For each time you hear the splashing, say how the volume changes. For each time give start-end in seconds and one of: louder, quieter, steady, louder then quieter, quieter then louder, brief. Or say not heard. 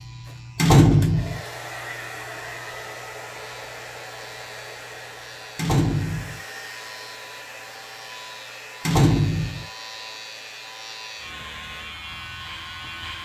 not heard.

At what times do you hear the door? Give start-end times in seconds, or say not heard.
0.6-1.4, 5.5-6.4, 8.8-9.7.